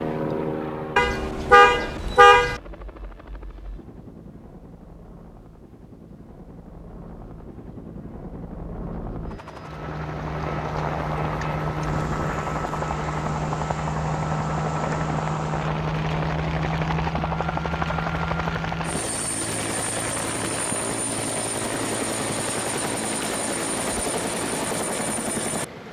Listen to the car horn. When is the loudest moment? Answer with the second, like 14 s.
2 s.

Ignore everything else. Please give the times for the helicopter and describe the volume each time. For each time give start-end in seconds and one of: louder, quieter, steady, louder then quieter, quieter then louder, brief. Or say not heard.
0.0-25.8 louder.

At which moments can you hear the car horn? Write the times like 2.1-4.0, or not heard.
0.9-2.6.